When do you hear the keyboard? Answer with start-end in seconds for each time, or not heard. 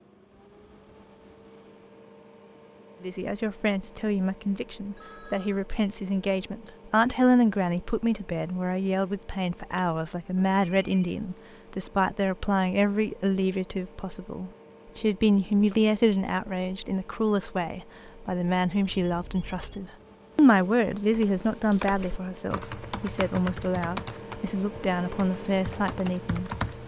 21.1-26.8.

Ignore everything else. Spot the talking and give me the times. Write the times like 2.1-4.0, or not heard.
3.0-26.8.